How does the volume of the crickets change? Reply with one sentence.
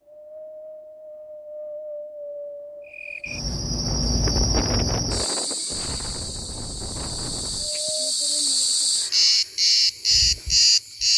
The volume of the crickets goes down, then up.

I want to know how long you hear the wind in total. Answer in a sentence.
The wind can be heard for 8 seconds in total.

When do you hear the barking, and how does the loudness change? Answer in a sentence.
You can't hear the barking here.